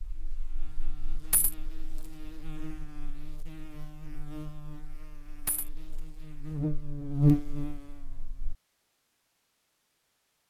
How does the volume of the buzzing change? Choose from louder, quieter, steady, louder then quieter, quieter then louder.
louder.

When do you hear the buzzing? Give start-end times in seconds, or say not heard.
0.0-8.6.